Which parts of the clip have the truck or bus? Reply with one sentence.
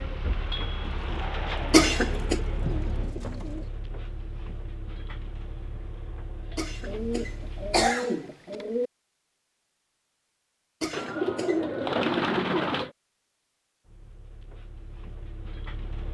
You can hear the truck or bus from 0.0 to 8.0 s and from 13.8 to 16.0 s.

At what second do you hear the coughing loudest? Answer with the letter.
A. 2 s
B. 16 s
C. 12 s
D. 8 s
A.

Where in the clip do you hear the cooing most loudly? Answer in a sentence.
The loudest moment of the cooing is at 12 seconds.